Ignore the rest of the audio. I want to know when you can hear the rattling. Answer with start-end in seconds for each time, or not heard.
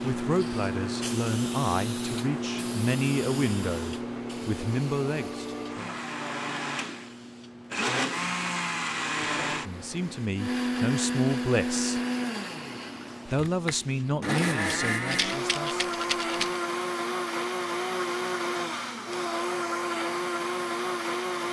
15.1-16.6.